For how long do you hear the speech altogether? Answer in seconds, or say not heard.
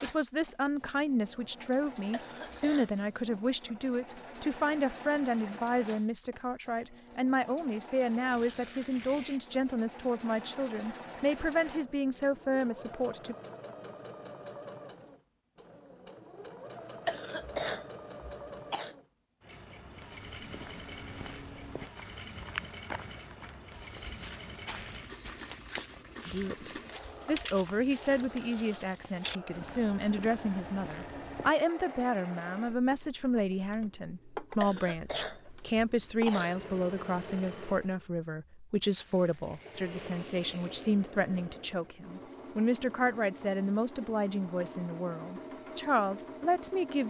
34 s.